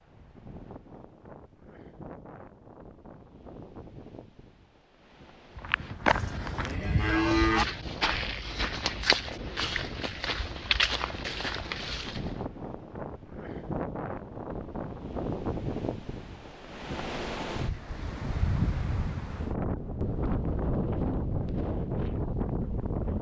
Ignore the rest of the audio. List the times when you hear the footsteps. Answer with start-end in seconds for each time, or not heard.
5.5-12.4.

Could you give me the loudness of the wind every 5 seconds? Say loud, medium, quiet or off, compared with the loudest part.
quiet, quiet, medium, loud, loud.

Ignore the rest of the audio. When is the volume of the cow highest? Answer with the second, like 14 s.
7 s.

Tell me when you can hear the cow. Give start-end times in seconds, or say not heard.
6.1-7.7.